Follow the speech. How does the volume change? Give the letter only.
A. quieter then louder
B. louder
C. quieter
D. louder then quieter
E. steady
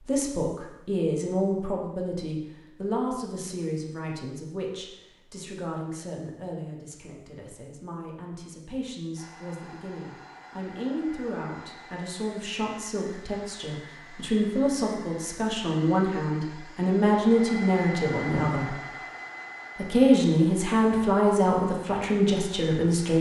A.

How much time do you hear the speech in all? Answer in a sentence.
You can hear the speech for 22 seconds altogether.